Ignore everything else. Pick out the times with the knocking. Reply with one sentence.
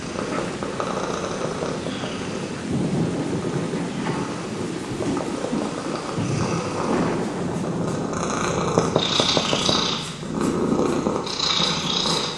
You can hear the knocking from 1.4 to 2.1 s, from 5.0 to 6.0 s and from 8.8 to 9.8 s.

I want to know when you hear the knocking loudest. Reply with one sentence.
The volume of the knocking peaks at 9 seconds.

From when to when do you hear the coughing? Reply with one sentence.
The coughing can be heard from 0.1 to 0.6 s.